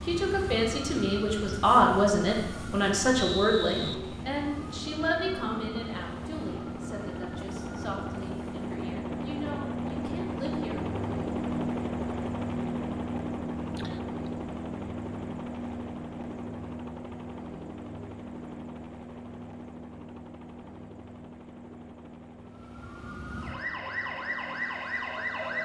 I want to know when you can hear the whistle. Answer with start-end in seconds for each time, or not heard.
3.1-4.0.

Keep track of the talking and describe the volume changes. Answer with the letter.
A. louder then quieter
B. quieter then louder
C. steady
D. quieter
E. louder
D.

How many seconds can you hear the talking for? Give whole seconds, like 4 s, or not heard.
11 s.